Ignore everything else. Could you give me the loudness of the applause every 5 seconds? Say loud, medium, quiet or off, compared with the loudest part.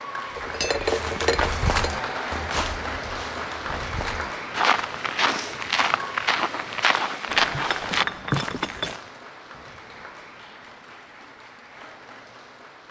loud, medium, quiet.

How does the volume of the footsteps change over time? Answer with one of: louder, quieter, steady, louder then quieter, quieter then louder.
quieter then louder.